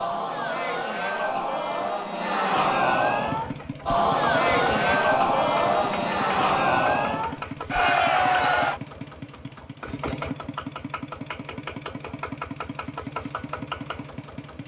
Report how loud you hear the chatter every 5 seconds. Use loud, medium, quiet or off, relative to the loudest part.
loud, loud, off.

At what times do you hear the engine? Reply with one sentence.
The engine can be heard from 3.1 to 14.6 s.